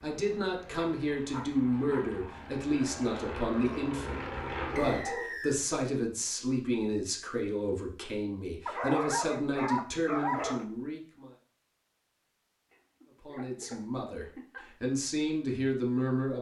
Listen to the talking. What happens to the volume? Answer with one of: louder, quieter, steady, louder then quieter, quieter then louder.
steady.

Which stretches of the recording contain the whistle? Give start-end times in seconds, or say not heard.
4.8-5.6.